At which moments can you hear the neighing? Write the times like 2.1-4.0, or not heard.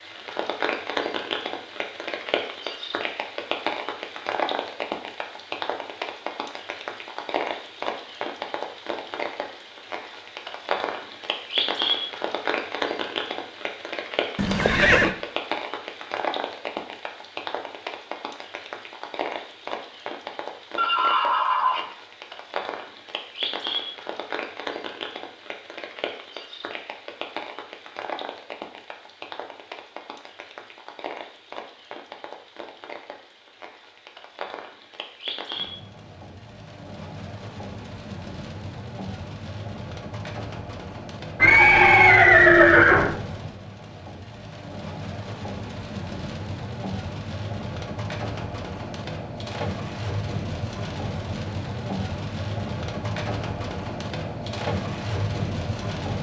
14.3-15.2, 20.8-21.9, 41.4-43.1.